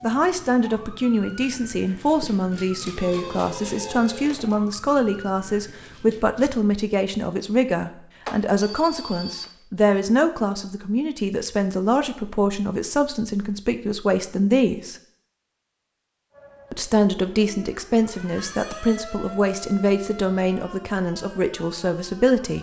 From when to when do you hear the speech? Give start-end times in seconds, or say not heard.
0.0-14.9, 16.7-22.5.